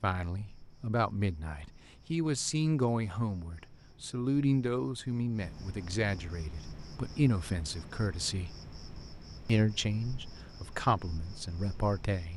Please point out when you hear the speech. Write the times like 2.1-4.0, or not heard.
0.0-8.6, 9.4-12.3.